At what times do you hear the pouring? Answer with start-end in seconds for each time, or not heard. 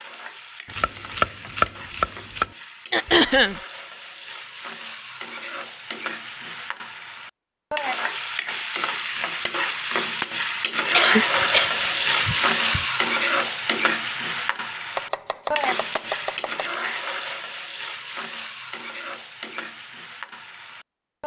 not heard.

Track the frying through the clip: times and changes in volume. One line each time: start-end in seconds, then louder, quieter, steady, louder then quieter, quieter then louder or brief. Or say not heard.
0.0-21.2 louder then quieter.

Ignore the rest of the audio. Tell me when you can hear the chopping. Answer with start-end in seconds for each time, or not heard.
0.7-2.5, 14.9-16.7.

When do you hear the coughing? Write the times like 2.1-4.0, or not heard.
2.9-3.6, 10.9-12.8.